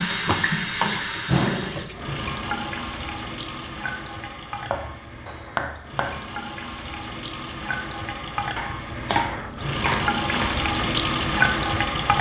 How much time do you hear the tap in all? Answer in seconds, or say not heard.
12 s.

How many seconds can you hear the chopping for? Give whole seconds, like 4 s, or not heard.
5 s.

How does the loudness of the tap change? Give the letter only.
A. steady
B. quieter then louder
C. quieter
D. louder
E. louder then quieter
B.